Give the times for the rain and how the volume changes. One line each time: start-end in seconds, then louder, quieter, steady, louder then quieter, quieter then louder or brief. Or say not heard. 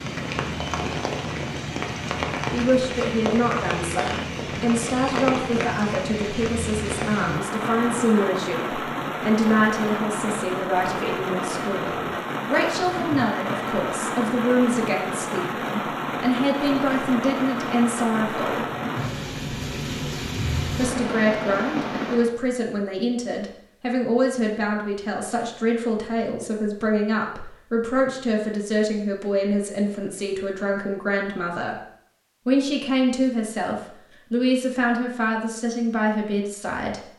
0.0-22.3 steady.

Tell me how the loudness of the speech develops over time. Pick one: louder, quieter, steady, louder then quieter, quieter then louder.
steady.